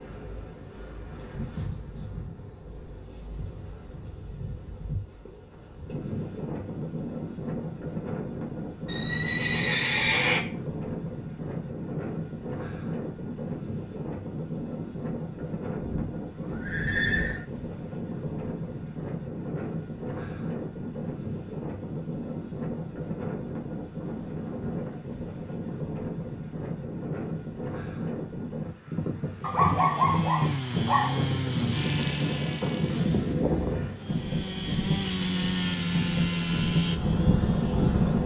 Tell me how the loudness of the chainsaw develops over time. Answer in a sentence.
The loudness of the chainsaw goes down, then up.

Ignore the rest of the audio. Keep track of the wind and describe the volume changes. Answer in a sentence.
The loudness of the wind goes up.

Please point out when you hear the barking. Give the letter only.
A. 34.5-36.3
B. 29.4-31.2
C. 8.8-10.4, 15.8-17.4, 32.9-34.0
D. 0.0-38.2
B.